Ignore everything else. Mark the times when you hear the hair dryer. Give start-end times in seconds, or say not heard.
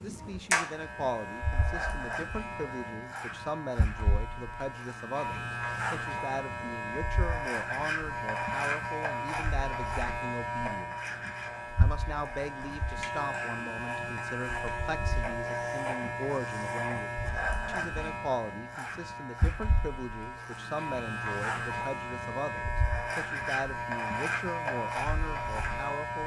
not heard.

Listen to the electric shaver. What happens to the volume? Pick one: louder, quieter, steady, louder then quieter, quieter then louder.
steady.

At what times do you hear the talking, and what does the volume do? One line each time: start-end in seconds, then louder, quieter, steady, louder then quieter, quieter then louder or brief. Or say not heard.
0.0-11.2 steady
11.8-26.2 steady.